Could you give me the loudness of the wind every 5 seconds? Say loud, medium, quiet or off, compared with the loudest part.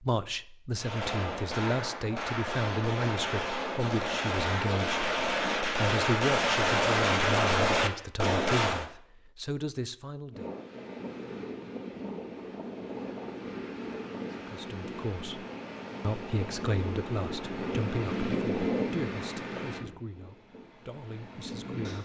off, off, medium, loud, medium.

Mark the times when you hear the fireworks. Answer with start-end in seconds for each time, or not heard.
0.8-8.8.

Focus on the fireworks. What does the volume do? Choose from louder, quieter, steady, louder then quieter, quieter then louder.
louder.